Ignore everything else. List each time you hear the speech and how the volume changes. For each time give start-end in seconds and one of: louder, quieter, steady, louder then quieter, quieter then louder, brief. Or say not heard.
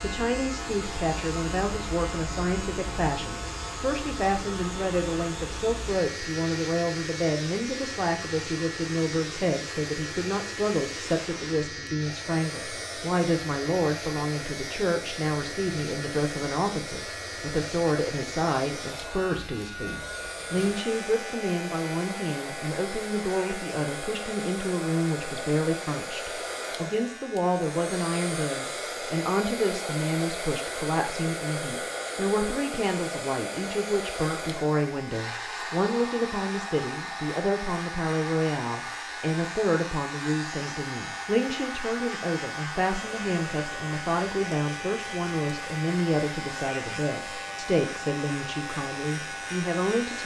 0.0-50.2 steady.